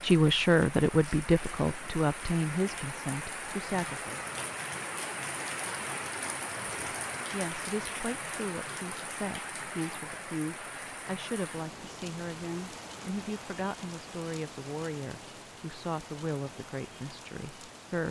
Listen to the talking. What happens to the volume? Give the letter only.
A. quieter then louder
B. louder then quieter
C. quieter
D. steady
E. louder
C.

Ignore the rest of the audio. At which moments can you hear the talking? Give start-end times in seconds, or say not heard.
0.0-4.2, 6.8-18.0.